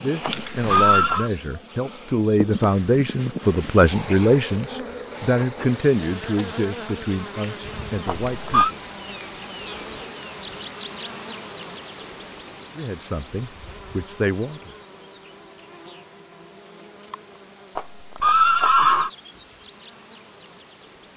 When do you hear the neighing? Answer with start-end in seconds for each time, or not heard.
0.2-1.3, 8.1-8.7, 17.8-19.1.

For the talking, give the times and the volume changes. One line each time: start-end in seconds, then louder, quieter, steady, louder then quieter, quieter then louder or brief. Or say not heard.
0.0-8.8 louder then quieter
12.8-14.8 brief.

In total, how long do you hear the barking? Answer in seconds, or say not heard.
not heard.